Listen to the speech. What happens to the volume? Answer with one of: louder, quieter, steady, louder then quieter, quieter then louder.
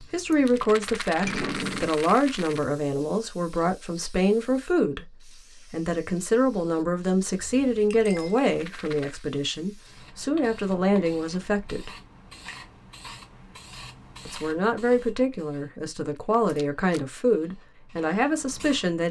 steady.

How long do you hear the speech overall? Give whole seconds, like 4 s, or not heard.
16 s.